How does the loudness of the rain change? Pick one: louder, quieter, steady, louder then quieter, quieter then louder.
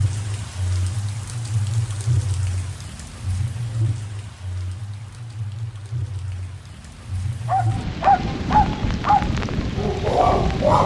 quieter then louder.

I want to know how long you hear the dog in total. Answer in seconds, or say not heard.
3 s.